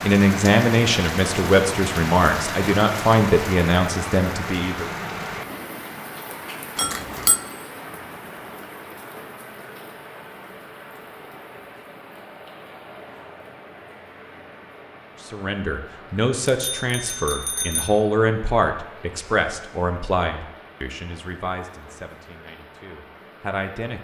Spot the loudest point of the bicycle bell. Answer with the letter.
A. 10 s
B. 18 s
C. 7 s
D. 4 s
C.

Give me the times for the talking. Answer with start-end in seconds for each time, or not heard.
0.0-4.9, 15.2-23.9.